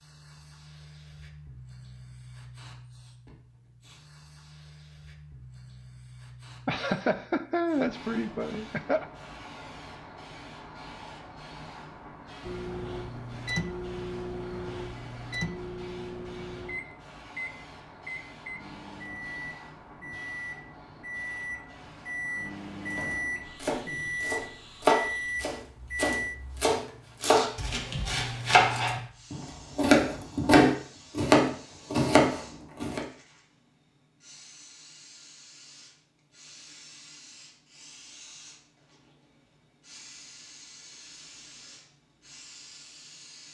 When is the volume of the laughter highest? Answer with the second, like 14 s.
8 s.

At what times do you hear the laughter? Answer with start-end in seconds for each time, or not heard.
6.7-9.1.